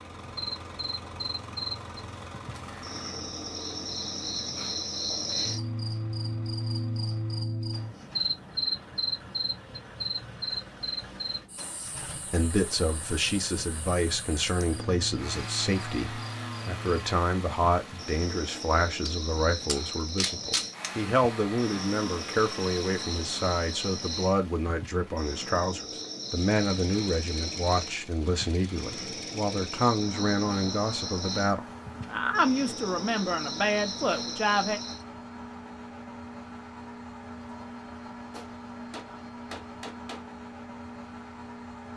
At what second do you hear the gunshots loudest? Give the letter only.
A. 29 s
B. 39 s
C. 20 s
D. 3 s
C.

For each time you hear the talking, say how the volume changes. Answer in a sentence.
The talking can be heard from 12.2 to 34.8 s, at a steady volume.